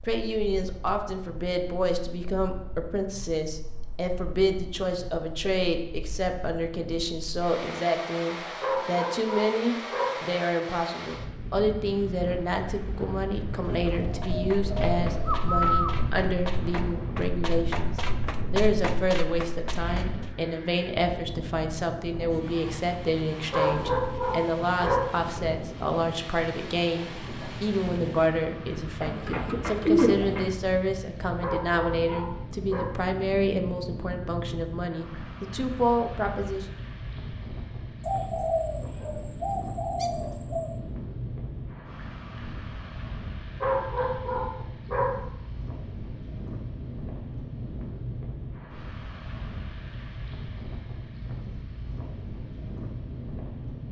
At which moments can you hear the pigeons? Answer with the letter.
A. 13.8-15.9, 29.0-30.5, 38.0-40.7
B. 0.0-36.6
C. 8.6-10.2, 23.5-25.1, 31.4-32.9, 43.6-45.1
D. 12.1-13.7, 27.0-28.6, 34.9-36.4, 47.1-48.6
A.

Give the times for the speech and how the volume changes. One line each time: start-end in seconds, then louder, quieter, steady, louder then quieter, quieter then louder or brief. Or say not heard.
0.0-36.6 steady.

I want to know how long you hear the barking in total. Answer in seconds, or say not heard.
6 s.